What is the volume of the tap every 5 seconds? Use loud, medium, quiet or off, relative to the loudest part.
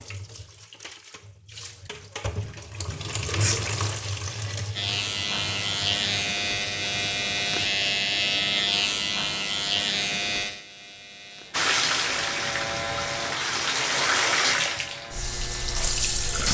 medium, quiet, loud, loud.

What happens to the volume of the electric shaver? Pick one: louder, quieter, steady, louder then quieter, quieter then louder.
quieter.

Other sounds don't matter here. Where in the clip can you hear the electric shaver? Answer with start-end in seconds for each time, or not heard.
4.8-16.3.